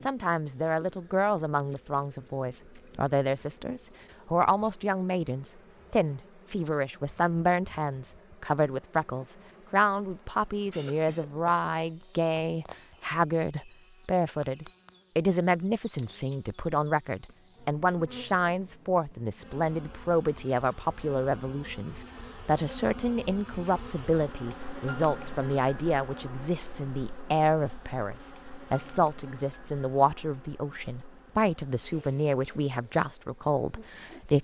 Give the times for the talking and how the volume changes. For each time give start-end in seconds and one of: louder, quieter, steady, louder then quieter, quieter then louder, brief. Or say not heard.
0.1-34.3 steady.